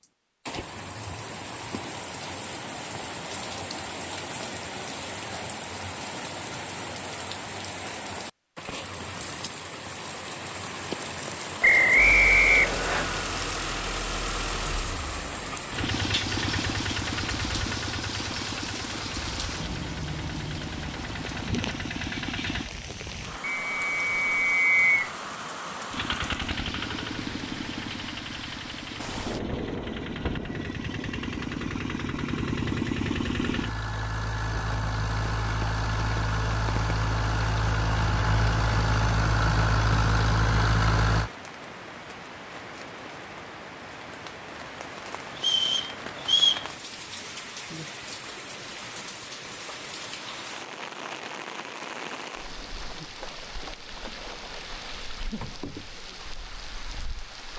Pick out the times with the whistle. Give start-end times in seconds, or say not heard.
11.6-13.1, 23.4-25.1, 45.4-46.6.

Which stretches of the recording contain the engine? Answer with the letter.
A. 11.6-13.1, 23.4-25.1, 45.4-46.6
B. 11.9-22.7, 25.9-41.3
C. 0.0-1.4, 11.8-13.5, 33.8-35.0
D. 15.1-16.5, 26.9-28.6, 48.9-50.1
B.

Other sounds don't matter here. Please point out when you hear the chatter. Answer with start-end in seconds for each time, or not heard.
not heard.